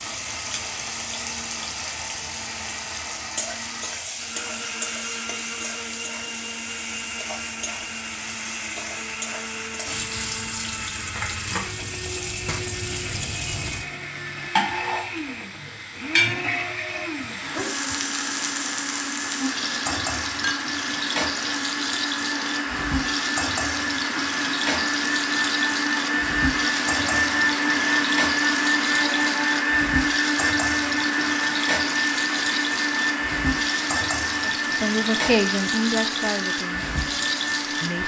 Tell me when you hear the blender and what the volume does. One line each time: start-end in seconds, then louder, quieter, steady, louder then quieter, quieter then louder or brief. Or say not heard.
0.0-38.0 louder.